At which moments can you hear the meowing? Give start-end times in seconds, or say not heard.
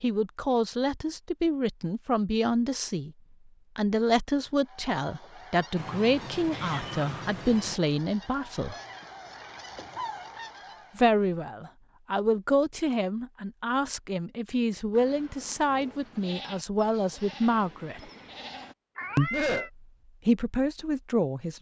5.8-7.8, 18.9-19.7.